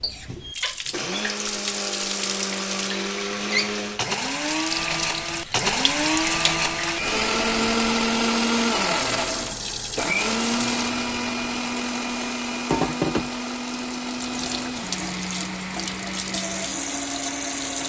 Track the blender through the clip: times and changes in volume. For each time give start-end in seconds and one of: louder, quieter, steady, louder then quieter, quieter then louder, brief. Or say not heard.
0.0-17.8 louder then quieter.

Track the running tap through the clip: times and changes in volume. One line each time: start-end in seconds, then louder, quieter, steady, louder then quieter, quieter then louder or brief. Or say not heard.
0.0-17.8 steady.